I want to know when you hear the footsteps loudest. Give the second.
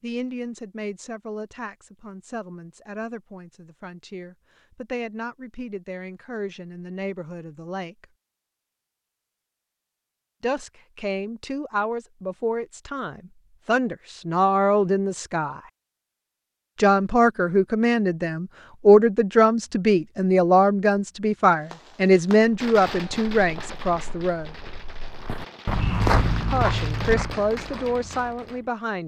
26 s.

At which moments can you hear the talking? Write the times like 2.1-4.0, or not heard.
0.0-8.1, 10.4-15.6, 16.8-24.6, 26.5-29.0.